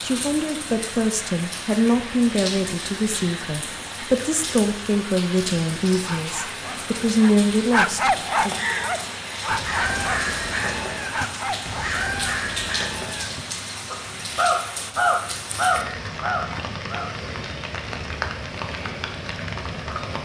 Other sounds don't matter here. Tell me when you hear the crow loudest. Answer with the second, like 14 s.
15 s.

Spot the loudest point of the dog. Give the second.
8 s.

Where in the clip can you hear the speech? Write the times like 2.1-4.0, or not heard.
0.0-8.7.